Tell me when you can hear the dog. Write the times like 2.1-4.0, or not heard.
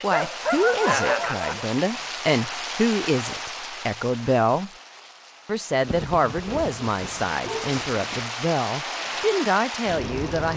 0.1-1.7, 5.8-8.2.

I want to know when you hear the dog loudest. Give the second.
1 s.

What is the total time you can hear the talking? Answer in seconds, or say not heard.
10 s.